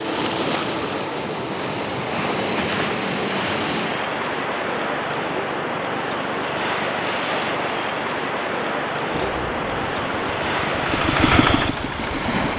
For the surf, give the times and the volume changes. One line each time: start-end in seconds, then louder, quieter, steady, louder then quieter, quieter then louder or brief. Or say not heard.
0.0-12.5 steady.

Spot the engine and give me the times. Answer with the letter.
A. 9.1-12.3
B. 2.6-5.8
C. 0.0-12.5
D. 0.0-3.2
A.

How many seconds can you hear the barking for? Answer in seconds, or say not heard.
not heard.